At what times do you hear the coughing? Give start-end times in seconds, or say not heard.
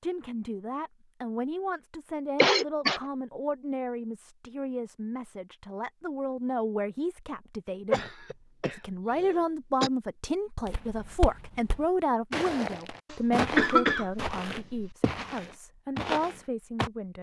2.4-3.0, 7.9-9.9, 13.1-14.9.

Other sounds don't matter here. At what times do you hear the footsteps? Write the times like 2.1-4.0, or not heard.
10.7-16.9.